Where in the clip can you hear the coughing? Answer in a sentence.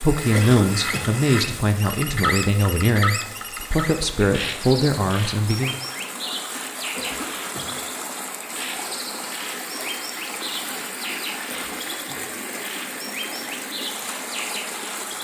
You can hear the coughing from 0.3 to 1.1 s, from 7.0 to 7.8 s and from 11.4 to 12.3 s.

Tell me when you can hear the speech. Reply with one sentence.
You can hear the speech from 0.0 to 5.8 s.